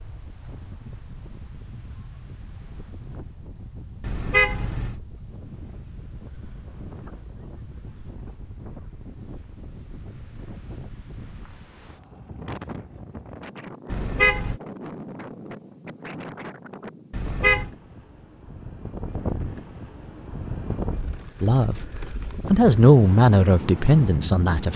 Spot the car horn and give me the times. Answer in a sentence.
You can hear the car horn from 4.0 to 5.0 s, from 13.9 to 14.6 s and from 17.1 to 17.7 s.